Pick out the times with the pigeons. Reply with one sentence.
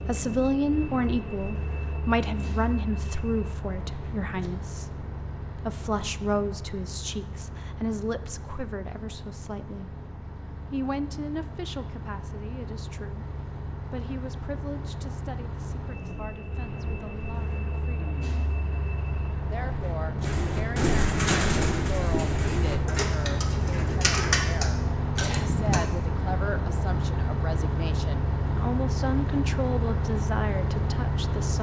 You can hear the pigeons from 20.2 to 25.8 s.